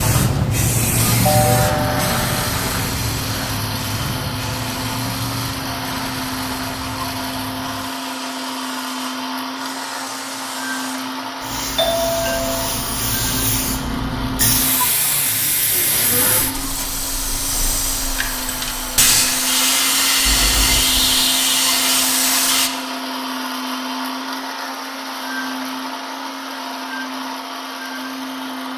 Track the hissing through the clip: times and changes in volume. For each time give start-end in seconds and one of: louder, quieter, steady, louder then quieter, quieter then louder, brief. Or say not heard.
0.0-22.7 quieter then louder.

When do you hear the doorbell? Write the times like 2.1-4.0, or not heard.
1.2-2.4, 11.8-12.7, 20.2-21.1.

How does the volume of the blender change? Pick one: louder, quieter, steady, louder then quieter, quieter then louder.
steady.